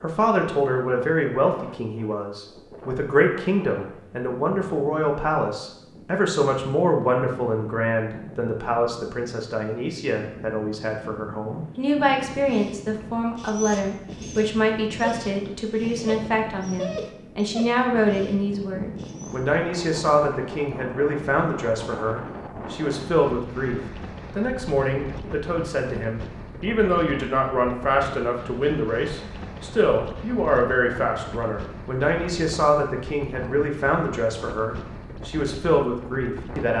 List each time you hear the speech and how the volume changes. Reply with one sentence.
You can hear the speech from 0.0 to 36.7 s, at a steady volume.